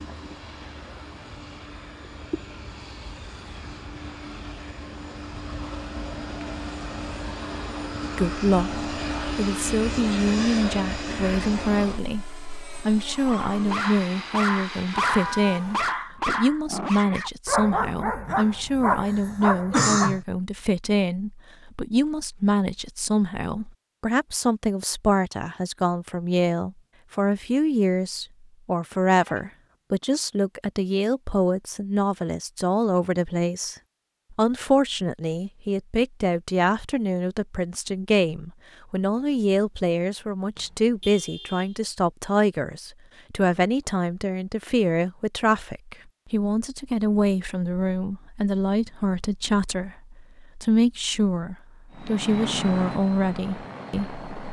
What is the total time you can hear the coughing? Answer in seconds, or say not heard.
2 s.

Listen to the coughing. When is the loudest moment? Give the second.
20 s.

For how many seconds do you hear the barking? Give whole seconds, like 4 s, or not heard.
7 s.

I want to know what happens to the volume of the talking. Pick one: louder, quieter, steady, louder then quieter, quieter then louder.
steady.